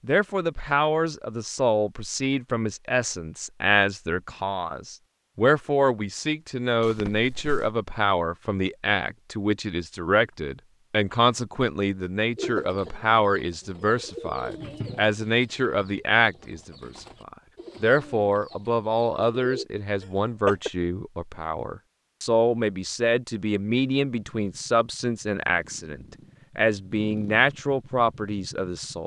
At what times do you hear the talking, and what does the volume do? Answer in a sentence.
You can hear the talking from 0.0 to 29.0 s, at a steady volume.